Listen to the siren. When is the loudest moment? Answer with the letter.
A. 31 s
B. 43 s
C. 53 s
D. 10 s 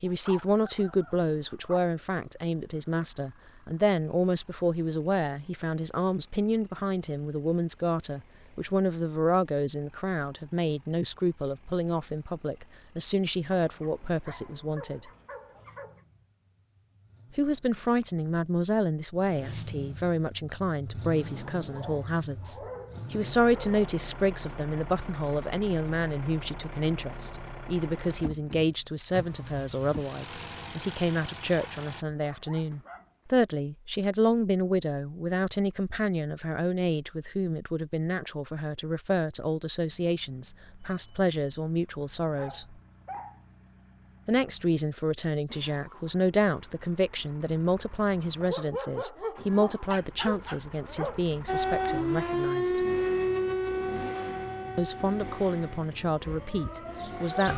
C.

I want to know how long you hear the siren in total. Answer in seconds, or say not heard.
6 s.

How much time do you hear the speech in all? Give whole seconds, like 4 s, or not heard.
52 s.